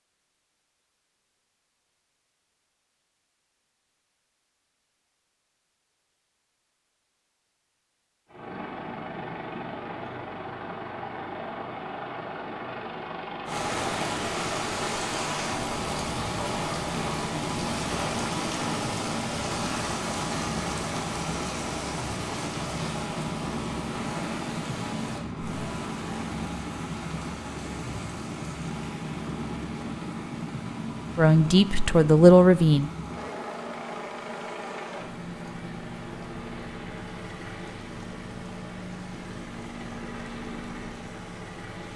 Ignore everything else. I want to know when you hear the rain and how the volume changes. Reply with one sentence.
The rain can be heard from 13.4 to 41.9 s, getting quieter.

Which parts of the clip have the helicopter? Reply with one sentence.
You can hear the helicopter from 8.2 to 41.9 s.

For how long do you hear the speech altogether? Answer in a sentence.
You can hear the speech for 2 seconds altogether.